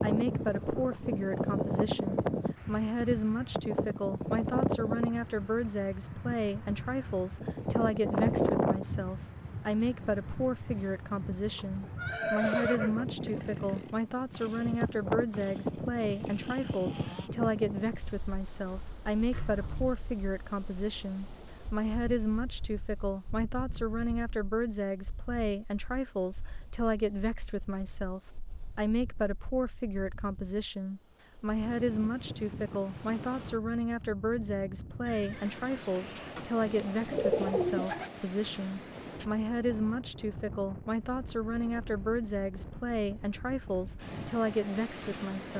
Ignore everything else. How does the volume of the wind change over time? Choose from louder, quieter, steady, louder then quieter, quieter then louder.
quieter then louder.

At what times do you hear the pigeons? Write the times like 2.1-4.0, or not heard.
36.4-38.1.